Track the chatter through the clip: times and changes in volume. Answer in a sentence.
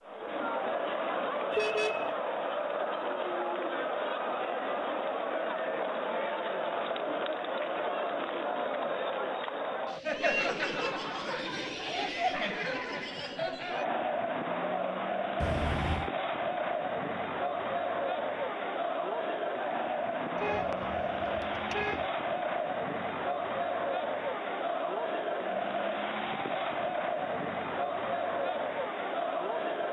The chatter can be heard from 0.0 to 29.8 s, at a steady volume.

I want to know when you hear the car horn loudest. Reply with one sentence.
The volume of the car horn peaks at 2 seconds.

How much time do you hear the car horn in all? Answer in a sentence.
You can hear the car horn for 3 seconds altogether.